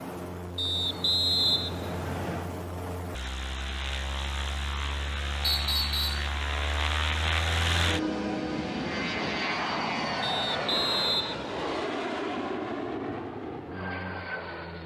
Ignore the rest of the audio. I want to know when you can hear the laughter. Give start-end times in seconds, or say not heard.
not heard.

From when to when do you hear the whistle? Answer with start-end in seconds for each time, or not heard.
0.6-2.5, 5.4-6.3, 10.2-11.7.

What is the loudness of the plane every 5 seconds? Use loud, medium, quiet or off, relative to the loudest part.
medium, loud, loud.